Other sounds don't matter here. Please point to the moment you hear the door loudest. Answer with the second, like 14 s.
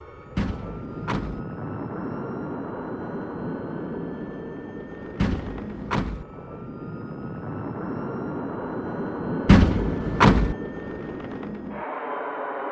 10 s.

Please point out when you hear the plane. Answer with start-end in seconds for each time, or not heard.
0.0-12.6.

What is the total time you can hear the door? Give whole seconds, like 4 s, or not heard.
3 s.